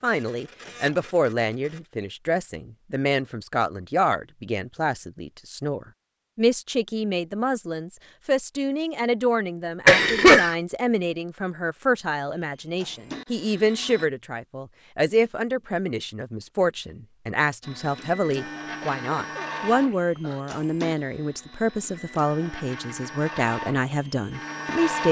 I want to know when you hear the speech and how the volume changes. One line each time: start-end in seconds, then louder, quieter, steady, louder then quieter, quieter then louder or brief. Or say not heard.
0.0-25.0 steady.